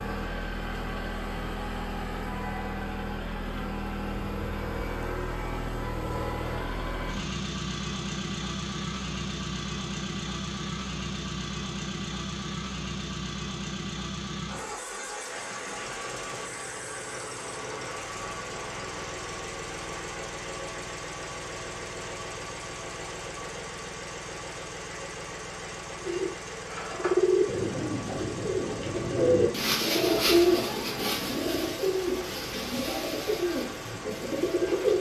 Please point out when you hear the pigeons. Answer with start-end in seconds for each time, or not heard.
26.0-34.9.